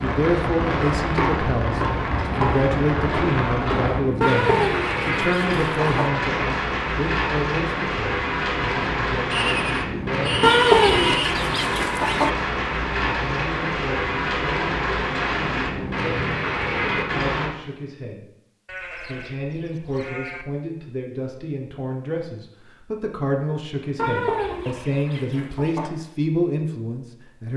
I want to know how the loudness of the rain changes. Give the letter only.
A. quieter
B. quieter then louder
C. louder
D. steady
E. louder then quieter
D.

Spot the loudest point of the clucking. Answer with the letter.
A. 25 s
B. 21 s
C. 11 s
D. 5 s
C.